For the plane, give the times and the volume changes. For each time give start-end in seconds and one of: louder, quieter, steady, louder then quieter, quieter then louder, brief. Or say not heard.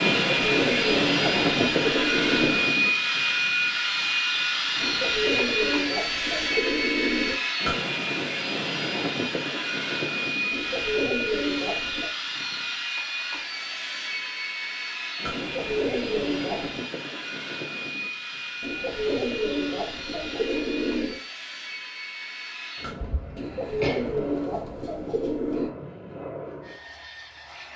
0.0-27.7 quieter.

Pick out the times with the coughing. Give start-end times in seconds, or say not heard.
22.9-24.1.